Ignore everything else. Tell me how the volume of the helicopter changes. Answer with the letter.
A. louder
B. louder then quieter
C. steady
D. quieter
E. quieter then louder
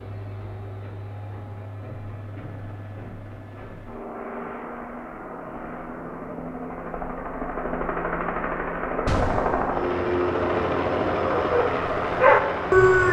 A.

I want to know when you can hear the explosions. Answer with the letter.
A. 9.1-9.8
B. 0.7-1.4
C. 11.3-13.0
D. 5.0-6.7
A.